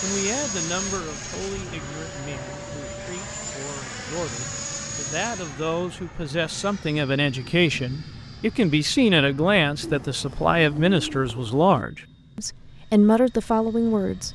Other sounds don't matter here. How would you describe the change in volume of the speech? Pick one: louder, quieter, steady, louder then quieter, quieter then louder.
louder.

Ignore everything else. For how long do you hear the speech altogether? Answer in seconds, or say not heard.
14 s.